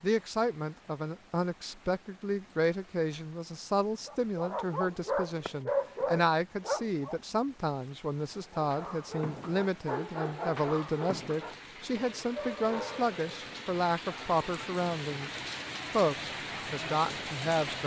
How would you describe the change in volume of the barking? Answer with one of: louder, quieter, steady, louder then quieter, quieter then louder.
quieter.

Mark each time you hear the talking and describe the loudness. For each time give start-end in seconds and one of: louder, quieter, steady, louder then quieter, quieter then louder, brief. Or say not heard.
0.0-17.8 steady.